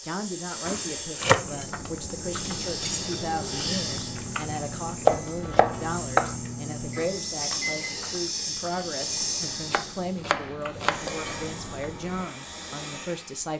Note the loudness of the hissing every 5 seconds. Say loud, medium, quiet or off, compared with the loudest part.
loud, loud, medium.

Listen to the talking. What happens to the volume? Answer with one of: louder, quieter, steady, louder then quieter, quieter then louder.
steady.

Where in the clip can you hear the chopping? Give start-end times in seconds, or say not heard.
0.7-2.1, 5.0-6.3, 9.7-11.5.